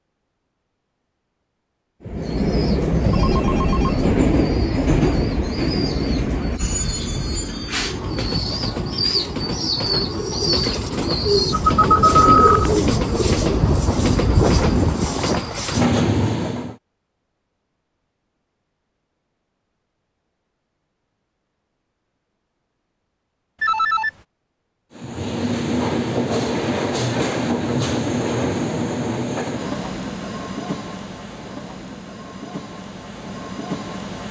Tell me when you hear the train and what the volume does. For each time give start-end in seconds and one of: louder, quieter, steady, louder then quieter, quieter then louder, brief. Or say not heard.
2.0-16.8 quieter then louder
24.9-34.2 quieter.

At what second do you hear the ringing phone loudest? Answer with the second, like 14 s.
12 s.